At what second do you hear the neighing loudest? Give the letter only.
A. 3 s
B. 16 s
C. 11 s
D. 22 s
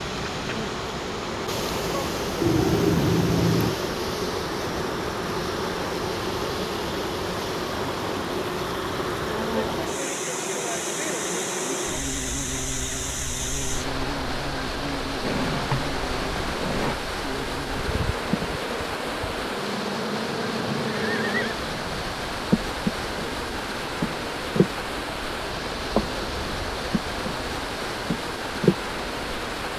A.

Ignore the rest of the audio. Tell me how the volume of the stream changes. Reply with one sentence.
The loudness of the stream stays about the same.